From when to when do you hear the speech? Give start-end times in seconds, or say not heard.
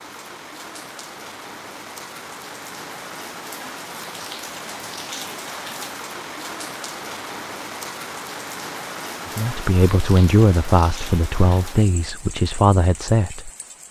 9.3-13.5.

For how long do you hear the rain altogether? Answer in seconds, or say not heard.
14 s.